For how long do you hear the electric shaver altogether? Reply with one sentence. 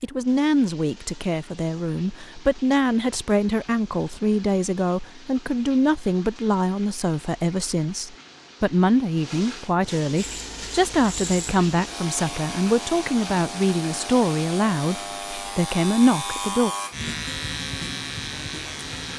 The electric shaver can be heard for 9 seconds in total.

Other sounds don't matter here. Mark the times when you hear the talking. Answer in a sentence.
The talking can be heard from 0.0 to 16.7 s.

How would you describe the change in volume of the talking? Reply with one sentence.
The loudness of the talking stays about the same.